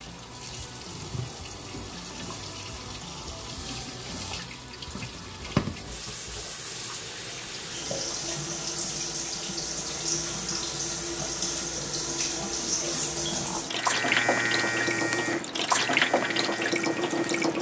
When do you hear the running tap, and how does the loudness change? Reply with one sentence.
You can hear the running tap from 0.0 to 17.5 s, getting louder.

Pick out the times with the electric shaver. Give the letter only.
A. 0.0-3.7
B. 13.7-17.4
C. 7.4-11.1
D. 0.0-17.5
B.